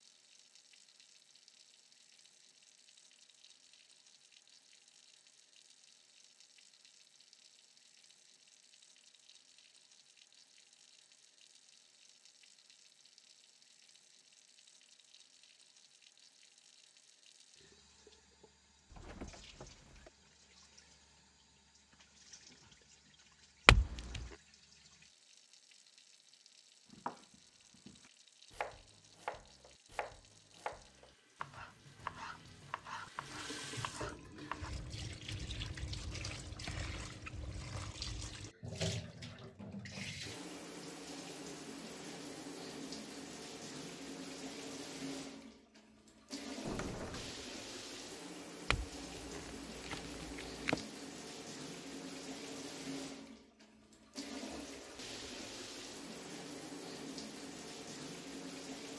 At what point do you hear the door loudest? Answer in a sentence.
The loudest moment of the door is at 47 seconds.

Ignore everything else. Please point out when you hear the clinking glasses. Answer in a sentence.
You can hear the clinking glasses from 23.6 to 24.2 s and from 48.7 to 50.9 s.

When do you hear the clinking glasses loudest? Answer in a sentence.
The volume of the clinking glasses peaks at 24 seconds.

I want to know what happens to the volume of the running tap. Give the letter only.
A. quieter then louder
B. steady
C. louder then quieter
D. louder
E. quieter
D.